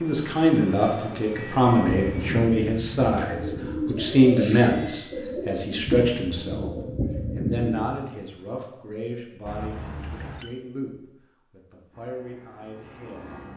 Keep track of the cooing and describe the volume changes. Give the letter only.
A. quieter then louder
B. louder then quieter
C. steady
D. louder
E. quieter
C.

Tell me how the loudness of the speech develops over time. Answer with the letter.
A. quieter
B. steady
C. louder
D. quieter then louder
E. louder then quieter
A.